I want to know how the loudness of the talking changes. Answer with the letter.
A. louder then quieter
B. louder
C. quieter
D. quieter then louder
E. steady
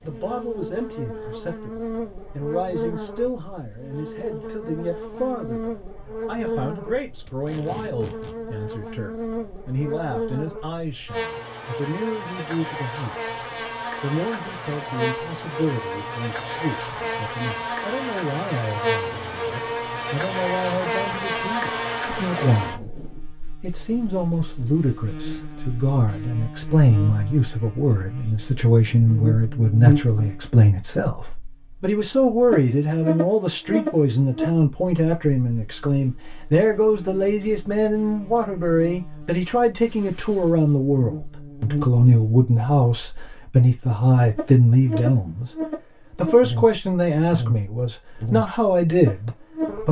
B.